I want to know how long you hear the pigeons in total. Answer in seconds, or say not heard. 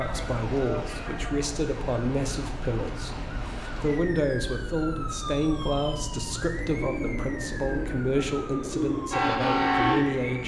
4 s.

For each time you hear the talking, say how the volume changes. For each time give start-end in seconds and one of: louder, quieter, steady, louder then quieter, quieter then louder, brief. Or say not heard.
0.0-10.4 steady.